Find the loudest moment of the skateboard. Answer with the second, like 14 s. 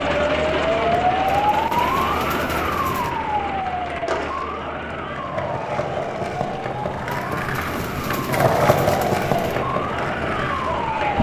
9 s.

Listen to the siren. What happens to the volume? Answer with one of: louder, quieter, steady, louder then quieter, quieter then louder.
quieter then louder.